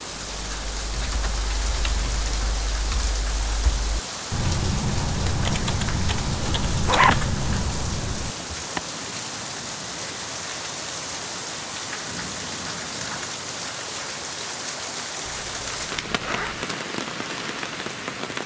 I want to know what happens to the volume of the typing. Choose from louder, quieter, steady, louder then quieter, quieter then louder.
louder.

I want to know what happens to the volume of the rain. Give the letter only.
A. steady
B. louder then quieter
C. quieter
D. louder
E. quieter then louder
A.